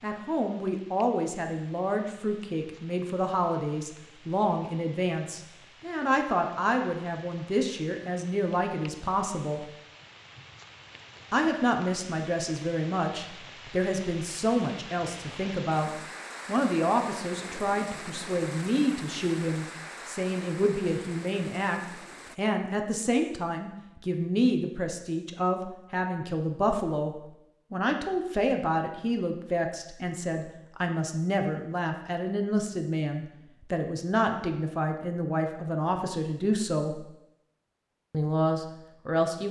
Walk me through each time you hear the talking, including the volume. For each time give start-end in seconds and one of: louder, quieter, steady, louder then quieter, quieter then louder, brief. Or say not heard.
0.0-9.7 steady
11.3-37.0 steady
38.1-39.4 brief.